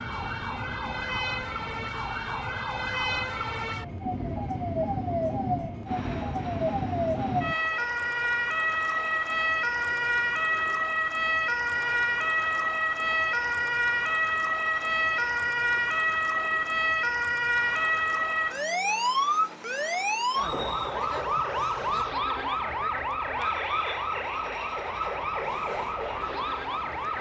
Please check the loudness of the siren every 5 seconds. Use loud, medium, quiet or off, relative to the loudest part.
medium, loud, loud, loud, loud, medium.